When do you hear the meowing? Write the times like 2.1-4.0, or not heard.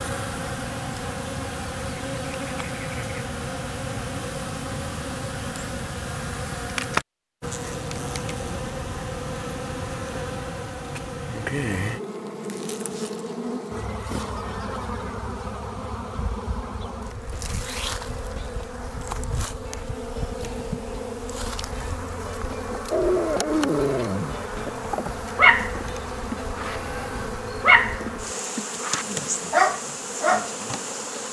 not heard.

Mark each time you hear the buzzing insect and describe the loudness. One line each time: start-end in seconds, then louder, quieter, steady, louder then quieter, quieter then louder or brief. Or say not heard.
0.0-31.2 steady.